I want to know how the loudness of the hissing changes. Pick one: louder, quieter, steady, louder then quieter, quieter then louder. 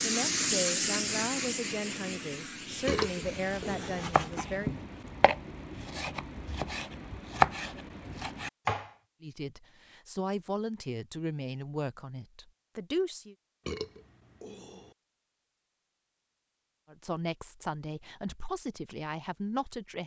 quieter.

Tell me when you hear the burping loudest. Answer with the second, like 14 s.
3 s.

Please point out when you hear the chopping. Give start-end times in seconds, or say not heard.
2.8-8.9.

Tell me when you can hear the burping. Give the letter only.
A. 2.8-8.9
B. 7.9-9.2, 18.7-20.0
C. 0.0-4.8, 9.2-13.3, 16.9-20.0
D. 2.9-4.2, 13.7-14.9
D.